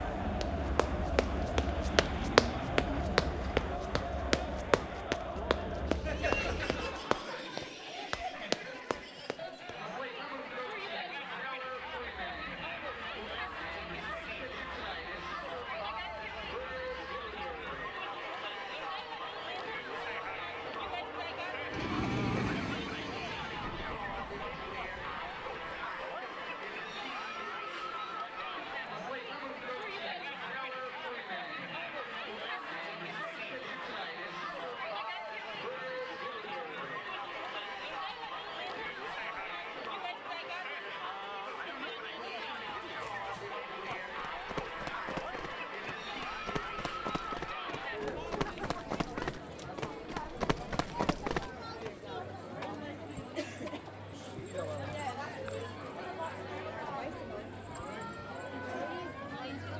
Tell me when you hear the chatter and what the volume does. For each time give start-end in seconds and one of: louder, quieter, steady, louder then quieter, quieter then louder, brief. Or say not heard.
0.0-59.7 steady.